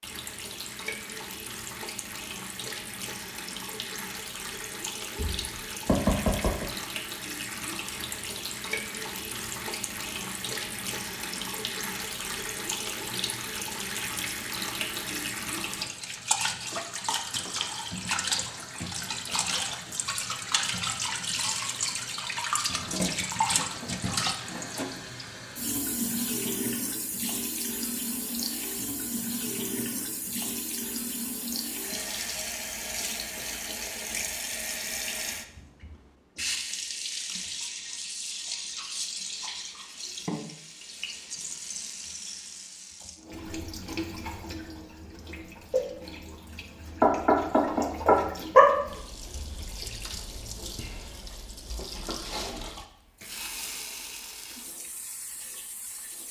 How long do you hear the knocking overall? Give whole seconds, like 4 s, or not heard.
3 s.